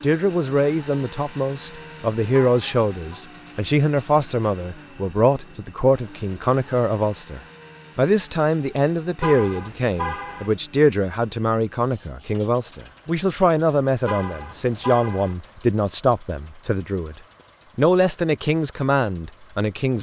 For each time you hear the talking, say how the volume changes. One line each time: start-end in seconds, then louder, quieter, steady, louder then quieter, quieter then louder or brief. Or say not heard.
0.0-17.1 steady
17.8-19.9 brief.